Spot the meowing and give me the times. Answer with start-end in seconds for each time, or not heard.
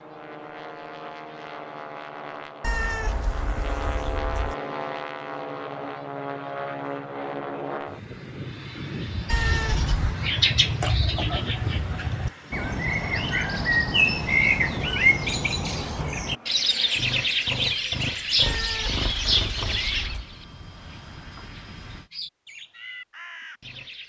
2.6-4.5, 9.2-10.2, 18.4-20.2.